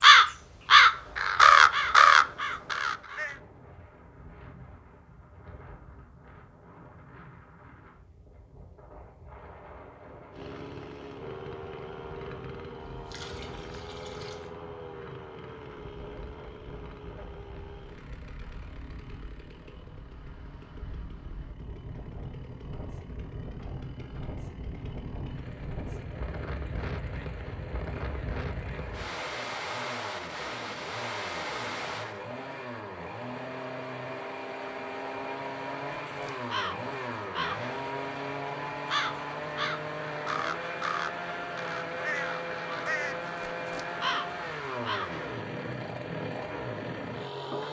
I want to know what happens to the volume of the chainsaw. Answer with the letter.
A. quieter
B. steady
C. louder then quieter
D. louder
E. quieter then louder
E.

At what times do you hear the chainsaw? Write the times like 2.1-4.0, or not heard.
10.3-47.6.